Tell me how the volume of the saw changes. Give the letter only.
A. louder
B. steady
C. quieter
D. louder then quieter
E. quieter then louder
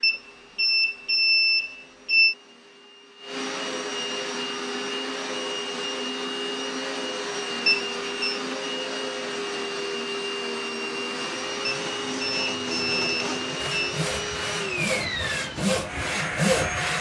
A.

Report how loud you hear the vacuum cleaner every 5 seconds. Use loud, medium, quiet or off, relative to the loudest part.
medium, loud, loud, loud.